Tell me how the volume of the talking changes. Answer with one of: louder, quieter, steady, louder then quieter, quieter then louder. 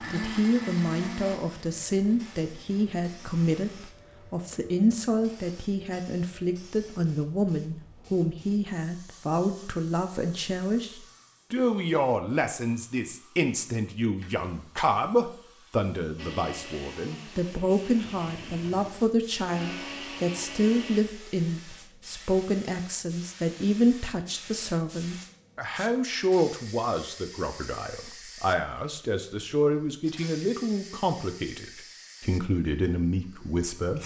steady.